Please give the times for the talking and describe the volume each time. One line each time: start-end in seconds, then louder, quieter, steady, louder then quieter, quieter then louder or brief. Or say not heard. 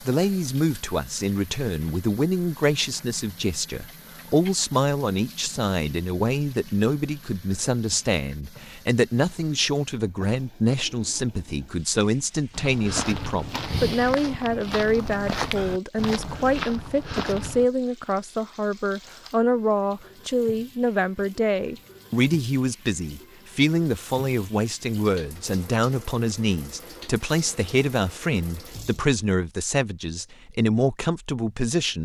0.0-32.0 steady.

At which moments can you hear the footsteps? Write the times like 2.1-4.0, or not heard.
12.5-17.6.